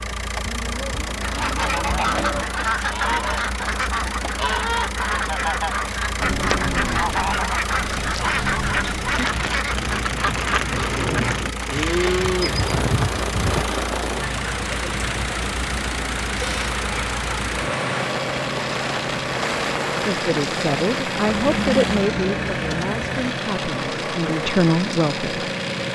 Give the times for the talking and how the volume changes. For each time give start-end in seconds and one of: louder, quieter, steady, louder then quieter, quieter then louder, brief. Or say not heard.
20.1-25.5 quieter then louder.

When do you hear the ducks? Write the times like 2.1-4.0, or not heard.
1.2-11.4.